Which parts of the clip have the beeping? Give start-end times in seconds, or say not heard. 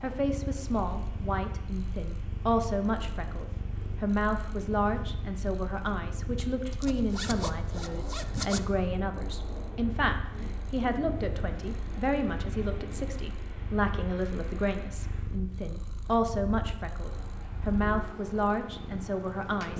not heard.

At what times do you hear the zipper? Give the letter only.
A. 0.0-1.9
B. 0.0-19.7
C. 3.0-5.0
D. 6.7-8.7
D.